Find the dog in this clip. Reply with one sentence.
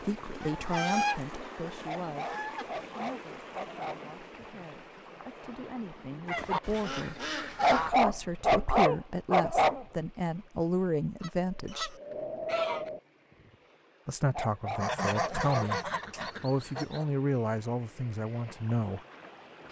The dog can be heard from 1.9 to 4.1 s, from 7.6 to 9.8 s and from 14.3 to 15.7 s.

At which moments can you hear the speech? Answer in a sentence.
You can hear the speech from 0.0 to 11.9 s and from 14.1 to 19.0 s.